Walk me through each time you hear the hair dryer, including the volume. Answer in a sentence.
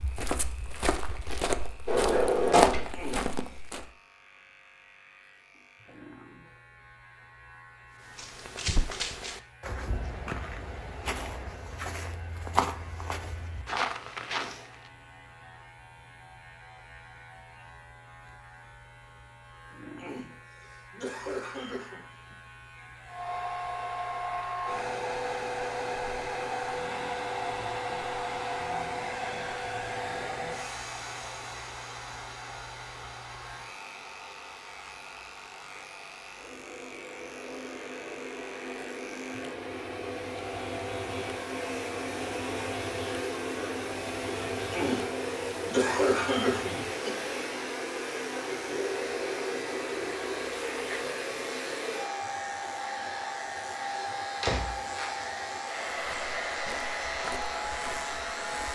You can hear the hair dryer from 23.1 to 58.7 s, getting quieter then louder.